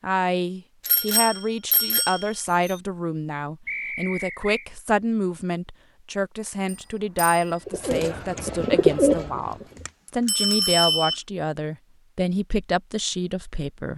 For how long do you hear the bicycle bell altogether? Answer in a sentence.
You can hear the bicycle bell for 4 seconds altogether.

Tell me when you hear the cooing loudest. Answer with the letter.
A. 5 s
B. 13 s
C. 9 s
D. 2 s
C.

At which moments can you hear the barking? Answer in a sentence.
The barking can't be heard in this clip.